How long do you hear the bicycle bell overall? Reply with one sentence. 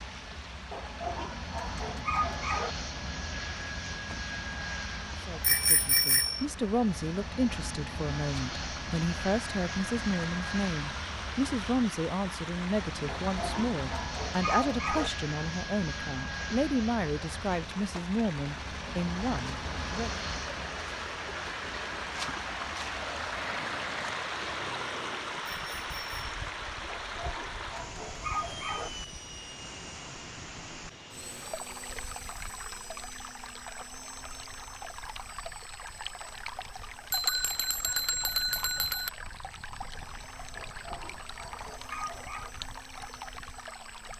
You can hear the bicycle bell for 4 seconds altogether.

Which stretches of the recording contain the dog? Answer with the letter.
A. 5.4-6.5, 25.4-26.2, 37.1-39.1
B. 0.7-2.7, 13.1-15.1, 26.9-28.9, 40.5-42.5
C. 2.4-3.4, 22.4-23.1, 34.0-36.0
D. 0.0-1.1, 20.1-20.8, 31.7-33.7
B.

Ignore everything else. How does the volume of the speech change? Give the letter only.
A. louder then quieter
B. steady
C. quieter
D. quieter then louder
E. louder
B.